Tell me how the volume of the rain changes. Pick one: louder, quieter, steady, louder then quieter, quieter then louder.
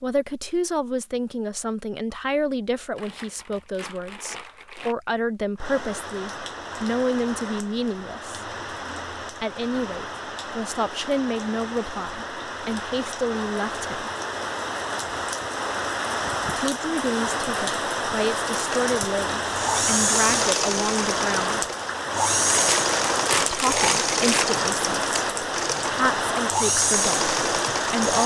louder.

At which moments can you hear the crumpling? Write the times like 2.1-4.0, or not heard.
3.0-5.0, 22.4-24.4.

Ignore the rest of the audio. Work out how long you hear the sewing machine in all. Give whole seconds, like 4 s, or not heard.
10 s.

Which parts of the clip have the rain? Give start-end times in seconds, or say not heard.
5.5-28.2.